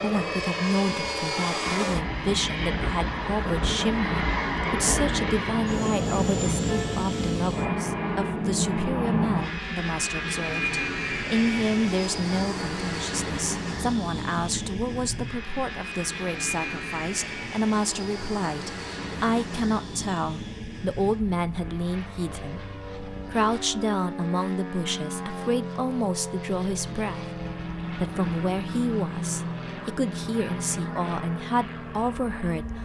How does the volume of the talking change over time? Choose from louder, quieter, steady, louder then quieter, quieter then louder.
steady.